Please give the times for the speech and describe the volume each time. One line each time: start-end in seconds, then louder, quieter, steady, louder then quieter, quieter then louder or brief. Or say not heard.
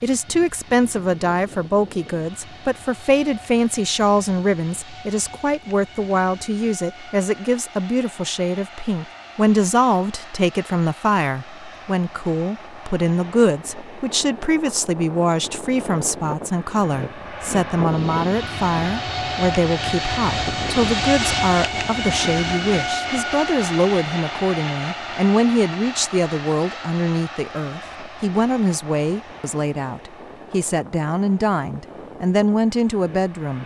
0.0-33.6 steady.